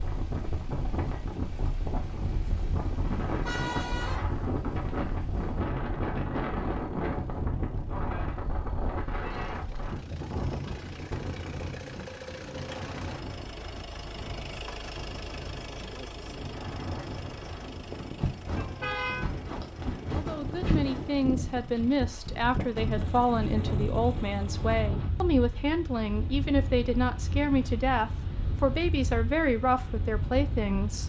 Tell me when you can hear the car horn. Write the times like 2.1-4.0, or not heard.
1.5-4.2, 18.6-19.2.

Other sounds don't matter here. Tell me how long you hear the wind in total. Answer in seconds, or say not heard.
31 s.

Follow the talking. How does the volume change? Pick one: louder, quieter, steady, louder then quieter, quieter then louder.
steady.